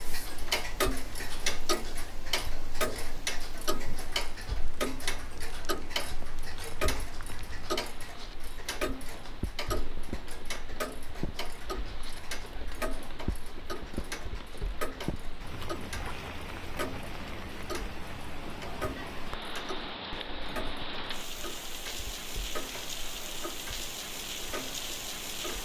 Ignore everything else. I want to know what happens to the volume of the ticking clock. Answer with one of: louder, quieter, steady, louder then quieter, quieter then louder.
quieter.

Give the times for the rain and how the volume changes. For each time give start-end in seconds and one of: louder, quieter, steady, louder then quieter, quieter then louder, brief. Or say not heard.
0.0-25.5 louder.